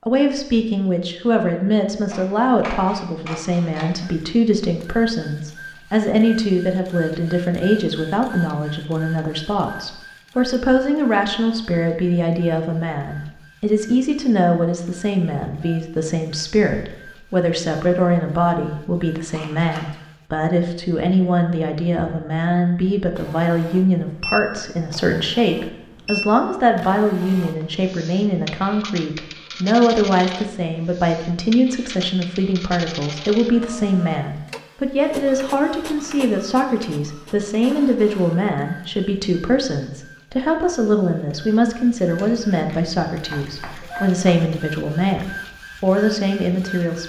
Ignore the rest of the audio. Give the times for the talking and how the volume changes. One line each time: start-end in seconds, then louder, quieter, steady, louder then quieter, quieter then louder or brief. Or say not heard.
0.1-47.0 steady.